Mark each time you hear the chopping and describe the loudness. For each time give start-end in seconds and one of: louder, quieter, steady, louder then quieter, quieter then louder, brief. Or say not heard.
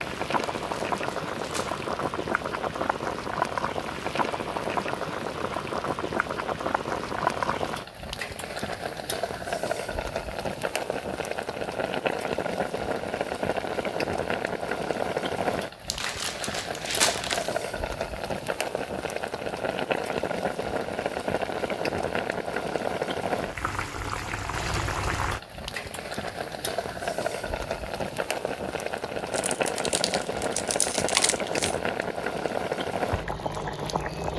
not heard.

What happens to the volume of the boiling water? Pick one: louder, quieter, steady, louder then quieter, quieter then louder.
steady.